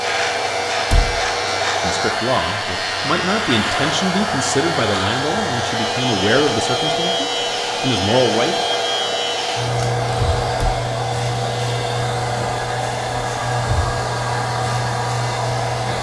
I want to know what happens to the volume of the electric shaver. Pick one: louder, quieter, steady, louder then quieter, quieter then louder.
steady.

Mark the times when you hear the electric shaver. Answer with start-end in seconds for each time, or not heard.
0.0-15.9.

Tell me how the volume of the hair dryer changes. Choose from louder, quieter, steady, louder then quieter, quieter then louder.
steady.